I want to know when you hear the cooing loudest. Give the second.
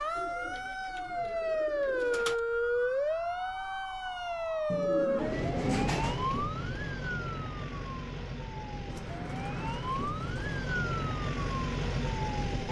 6 s.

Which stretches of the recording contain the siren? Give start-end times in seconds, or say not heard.
0.0-12.6.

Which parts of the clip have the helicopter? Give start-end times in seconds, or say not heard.
not heard.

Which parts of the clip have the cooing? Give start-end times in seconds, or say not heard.
0.1-2.4, 4.7-6.2, 8.9-10.6.